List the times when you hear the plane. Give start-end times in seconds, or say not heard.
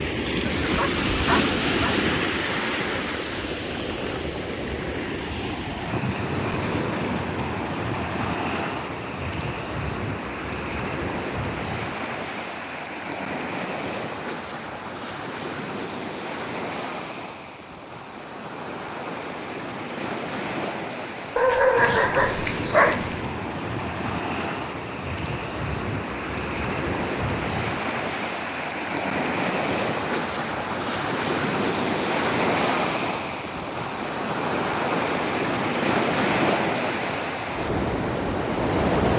not heard.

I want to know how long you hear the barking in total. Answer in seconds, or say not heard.
3 s.